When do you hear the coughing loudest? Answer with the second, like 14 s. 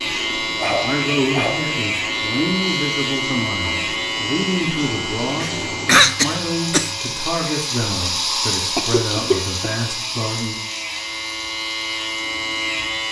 6 s.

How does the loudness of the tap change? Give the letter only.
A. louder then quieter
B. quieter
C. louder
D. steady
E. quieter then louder
A.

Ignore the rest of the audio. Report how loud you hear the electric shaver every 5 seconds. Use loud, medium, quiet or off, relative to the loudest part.
loud, medium, loud.